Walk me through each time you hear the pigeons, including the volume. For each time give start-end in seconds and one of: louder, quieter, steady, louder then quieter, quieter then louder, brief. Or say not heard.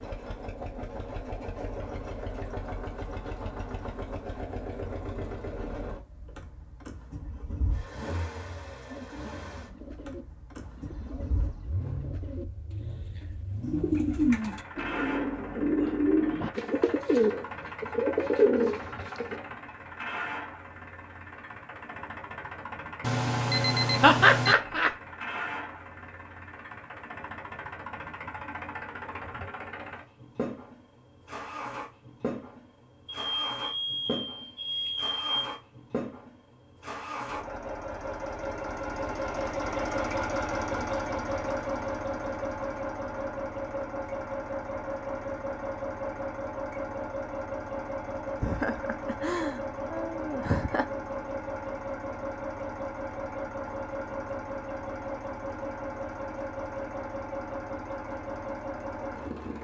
8.8-19.4 louder.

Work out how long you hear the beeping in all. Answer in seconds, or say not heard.
4 s.